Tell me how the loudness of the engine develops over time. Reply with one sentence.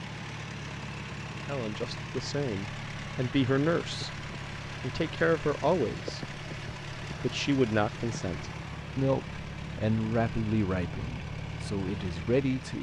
The loudness of the engine stays about the same.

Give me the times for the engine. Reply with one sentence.
You can hear the engine from 0.0 to 12.7 s.